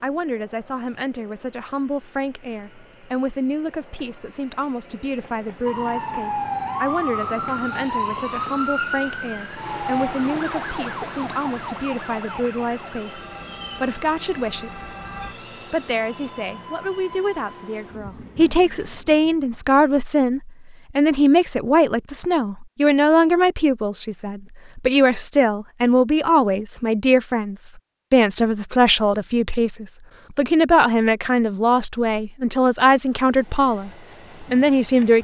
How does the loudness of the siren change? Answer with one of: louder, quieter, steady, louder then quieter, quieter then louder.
quieter.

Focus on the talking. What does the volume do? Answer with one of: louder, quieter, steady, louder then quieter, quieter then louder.
louder.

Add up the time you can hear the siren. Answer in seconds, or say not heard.
10 s.